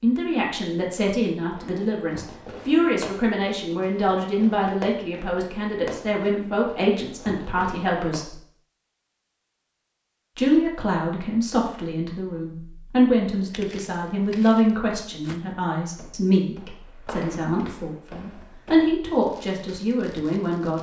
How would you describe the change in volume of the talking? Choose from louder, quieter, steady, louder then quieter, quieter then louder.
steady.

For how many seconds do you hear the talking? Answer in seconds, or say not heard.
19 s.